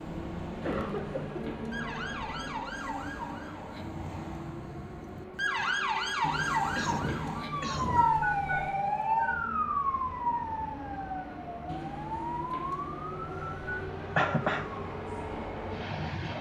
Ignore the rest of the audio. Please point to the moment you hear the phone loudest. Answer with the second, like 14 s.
8 s.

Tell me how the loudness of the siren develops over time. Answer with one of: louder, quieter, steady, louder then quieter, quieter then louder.
louder then quieter.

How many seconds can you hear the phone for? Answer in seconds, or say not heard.
7 s.